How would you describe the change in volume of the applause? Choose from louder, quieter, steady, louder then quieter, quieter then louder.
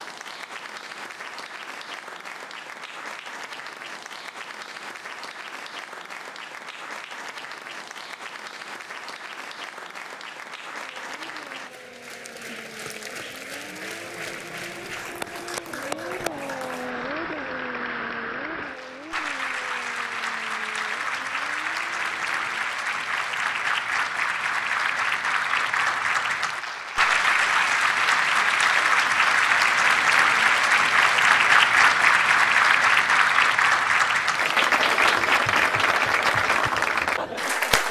louder.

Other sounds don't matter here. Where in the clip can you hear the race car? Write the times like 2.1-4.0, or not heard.
10.8-22.6.